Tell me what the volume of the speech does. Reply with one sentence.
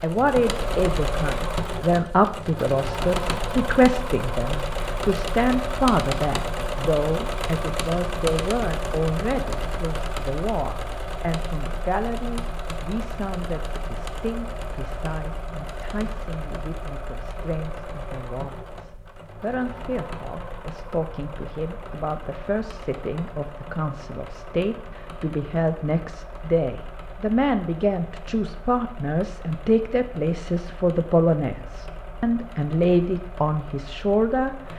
The volume of the speech goes down, then up.